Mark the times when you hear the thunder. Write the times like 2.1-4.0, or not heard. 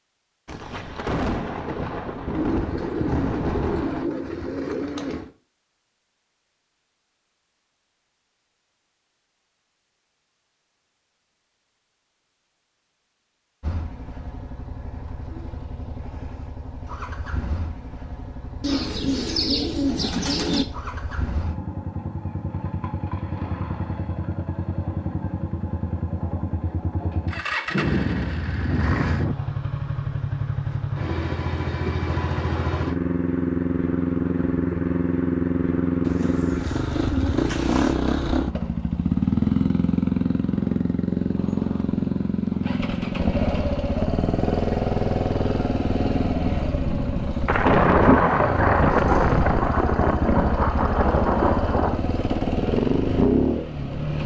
0.5-4.1, 27.7-29.4, 47.5-52.0.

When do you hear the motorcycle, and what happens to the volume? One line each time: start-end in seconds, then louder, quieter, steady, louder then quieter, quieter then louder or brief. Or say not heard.
13.6-54.2 louder.